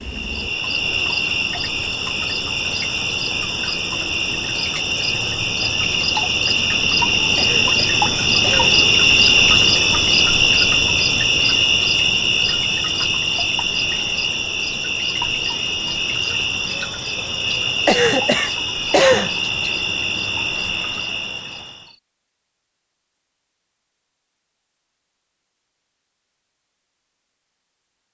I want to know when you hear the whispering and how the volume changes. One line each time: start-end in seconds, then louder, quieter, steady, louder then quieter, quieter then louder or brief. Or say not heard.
not heard.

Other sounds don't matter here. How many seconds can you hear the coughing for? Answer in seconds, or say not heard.
3 s.